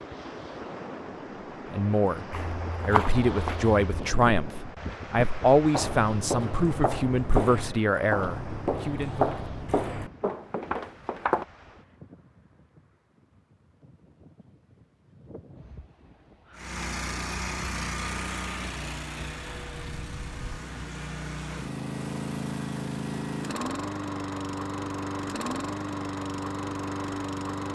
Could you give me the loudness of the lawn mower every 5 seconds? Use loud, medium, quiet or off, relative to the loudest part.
off, off, off, loud, loud, loud.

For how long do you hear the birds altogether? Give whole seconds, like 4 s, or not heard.
not heard.